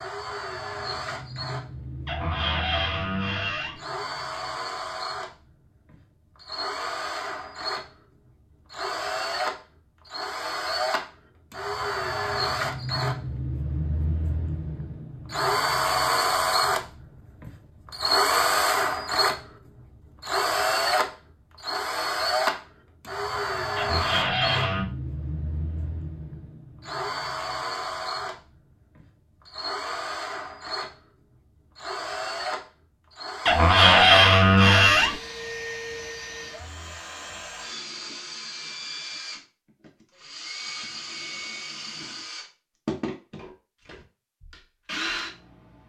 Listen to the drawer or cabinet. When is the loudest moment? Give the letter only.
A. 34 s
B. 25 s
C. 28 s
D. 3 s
A.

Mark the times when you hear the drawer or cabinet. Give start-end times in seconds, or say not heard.
2.0-3.8, 23.8-24.9, 33.5-35.1.